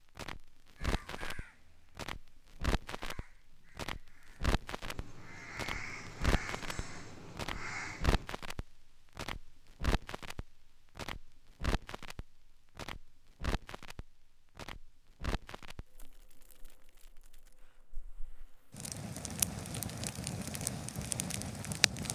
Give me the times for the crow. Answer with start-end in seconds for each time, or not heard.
0.8-8.3.